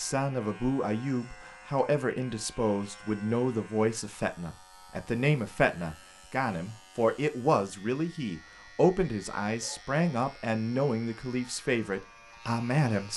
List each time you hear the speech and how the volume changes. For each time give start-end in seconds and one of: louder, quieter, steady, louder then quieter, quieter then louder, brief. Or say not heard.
0.0-13.1 steady.